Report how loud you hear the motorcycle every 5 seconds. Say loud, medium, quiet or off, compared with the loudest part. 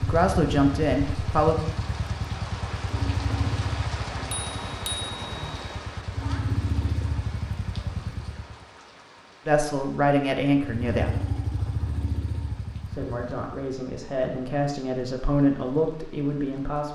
loud, loud, loud, off.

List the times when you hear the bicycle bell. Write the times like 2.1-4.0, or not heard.
4.3-5.8.